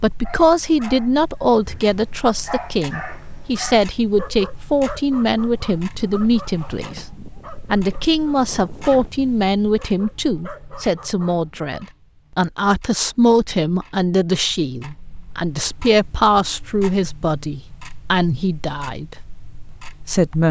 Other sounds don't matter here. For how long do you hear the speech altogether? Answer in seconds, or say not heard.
19 s.